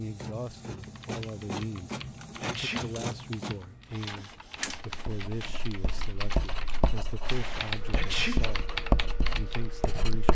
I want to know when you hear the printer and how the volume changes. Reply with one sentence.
You can hear the printer from 0.0 to 10.2 s, getting quieter.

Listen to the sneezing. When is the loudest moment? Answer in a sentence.
The volume of the sneezing peaks at 8 seconds.